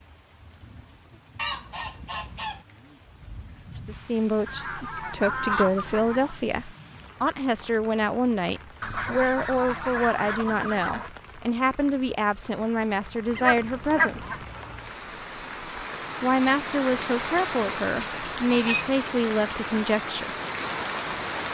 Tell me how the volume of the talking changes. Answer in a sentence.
The loudness of the talking stays about the same.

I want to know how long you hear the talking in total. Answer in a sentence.
The talking can be heard for 15 seconds in total.